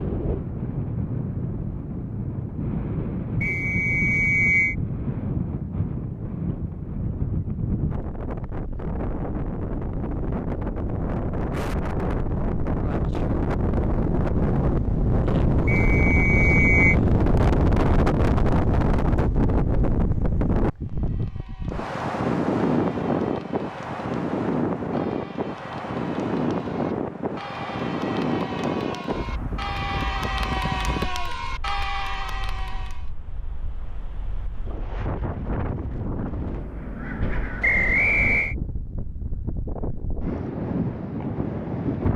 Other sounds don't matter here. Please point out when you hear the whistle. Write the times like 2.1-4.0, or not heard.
3.4-4.8, 15.7-16.9, 37.6-38.5.